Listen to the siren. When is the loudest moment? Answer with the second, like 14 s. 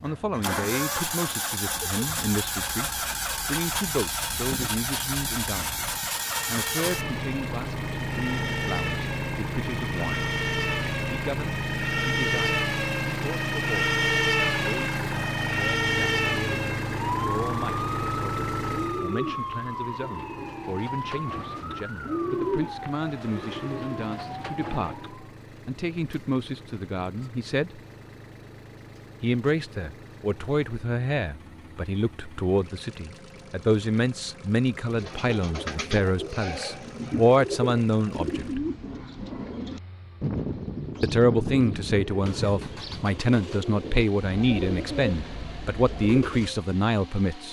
14 s.